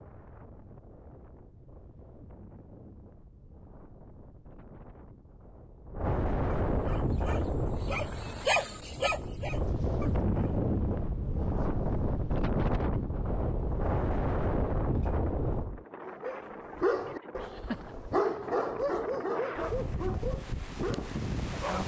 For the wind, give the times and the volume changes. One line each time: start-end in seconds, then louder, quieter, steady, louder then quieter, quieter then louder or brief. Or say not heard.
0.0-21.8 louder then quieter.